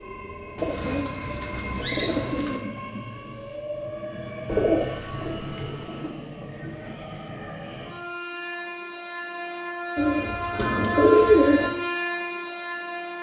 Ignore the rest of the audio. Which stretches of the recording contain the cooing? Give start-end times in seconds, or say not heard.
0.6-2.6, 4.5-6.2, 9.9-11.7.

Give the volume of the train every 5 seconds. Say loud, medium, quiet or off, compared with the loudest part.
medium, medium, loud.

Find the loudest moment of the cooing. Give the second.
11 s.